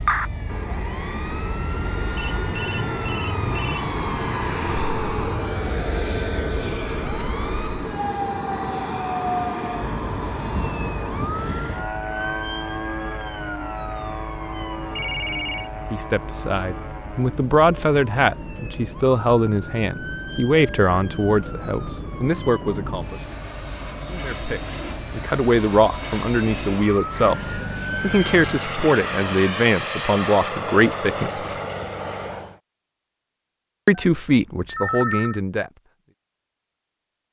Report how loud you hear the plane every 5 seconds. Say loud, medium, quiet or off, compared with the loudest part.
loud, loud, loud, medium, medium, loud, loud, off.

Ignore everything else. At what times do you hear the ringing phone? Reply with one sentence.
The ringing phone can be heard from 2.1 to 4.0 s, from 14.9 to 15.7 s and from 33.9 to 35.4 s.